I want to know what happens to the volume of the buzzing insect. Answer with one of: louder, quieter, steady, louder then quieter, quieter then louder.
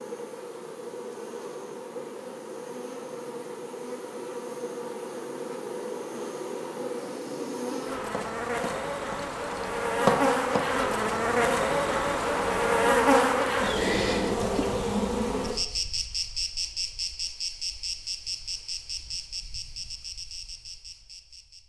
louder then quieter.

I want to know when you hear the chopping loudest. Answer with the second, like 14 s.
10 s.